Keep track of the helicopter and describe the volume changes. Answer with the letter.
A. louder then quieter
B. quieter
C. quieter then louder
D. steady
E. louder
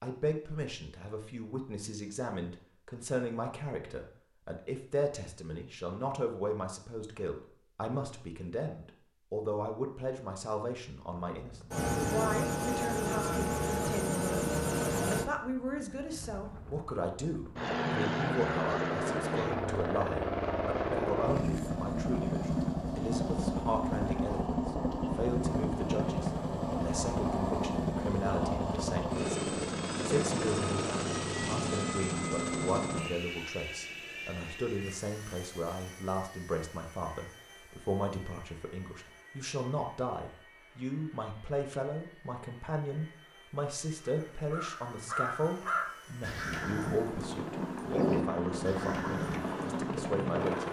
C.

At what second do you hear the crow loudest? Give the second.
48 s.